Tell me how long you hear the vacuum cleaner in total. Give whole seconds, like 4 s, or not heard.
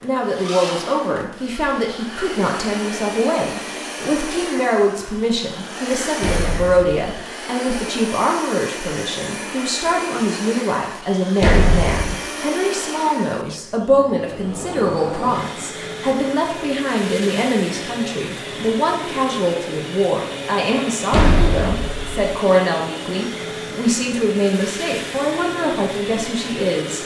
27 s.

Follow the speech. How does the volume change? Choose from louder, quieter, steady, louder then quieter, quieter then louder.
steady.